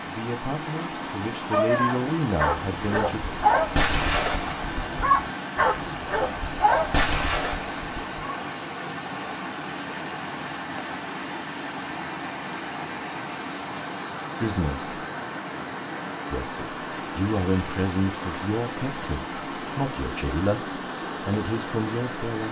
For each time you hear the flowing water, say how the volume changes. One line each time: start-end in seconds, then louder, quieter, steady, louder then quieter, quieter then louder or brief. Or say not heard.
0.0-22.4 steady.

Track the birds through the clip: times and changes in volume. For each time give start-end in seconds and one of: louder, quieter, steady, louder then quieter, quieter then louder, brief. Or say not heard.
not heard.